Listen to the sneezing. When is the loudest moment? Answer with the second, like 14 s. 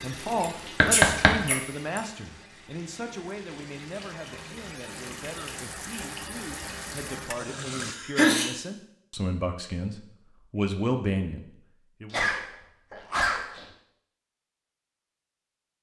8 s.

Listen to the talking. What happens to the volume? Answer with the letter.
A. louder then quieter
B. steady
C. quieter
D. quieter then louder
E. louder
D.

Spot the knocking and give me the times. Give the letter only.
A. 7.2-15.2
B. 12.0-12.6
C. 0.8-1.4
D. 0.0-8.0
C.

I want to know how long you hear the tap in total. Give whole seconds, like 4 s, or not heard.
8 s.